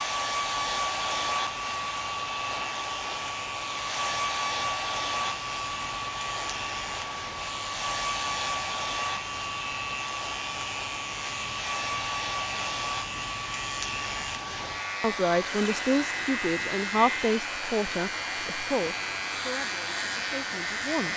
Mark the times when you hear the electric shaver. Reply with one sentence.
The electric shaver can be heard from 0.0 to 21.1 s.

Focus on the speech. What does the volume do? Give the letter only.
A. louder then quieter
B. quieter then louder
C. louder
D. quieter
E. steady
D.